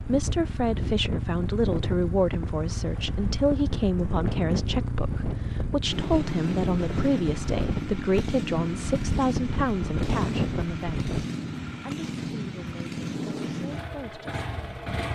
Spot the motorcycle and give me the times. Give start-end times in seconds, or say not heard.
0.0-15.1.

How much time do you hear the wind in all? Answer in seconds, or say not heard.
11 s.